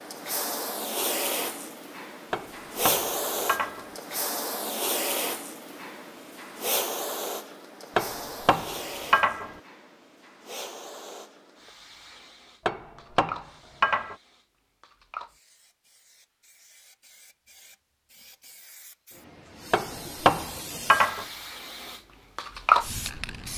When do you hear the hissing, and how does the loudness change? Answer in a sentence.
The hissing can be heard from 0.0 to 23.5 s, getting quieter then louder.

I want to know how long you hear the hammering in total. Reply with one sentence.
The hammering can be heard for 6 seconds in total.